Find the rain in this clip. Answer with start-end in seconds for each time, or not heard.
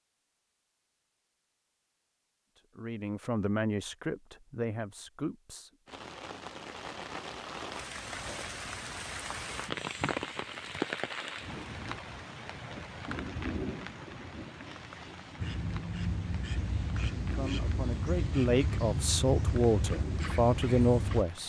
5.8-21.4.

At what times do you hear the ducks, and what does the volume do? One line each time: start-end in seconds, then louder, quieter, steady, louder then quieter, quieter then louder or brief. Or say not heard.
15.3-21.2 steady.